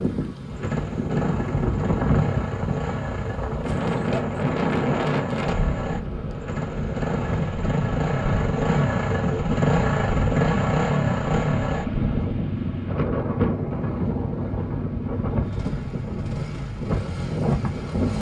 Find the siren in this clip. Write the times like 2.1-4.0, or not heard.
not heard.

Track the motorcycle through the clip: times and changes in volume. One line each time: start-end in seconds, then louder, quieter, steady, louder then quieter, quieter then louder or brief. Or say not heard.
0.2-18.1 louder then quieter.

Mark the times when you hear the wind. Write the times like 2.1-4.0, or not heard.
0.0-18.1.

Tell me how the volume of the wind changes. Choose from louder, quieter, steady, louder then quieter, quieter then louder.
steady.